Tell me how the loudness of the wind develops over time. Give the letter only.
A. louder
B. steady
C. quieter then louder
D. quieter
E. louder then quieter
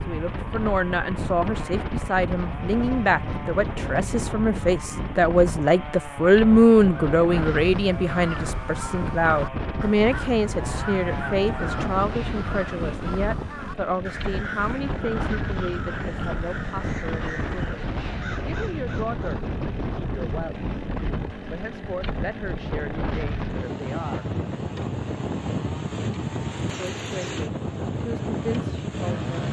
B.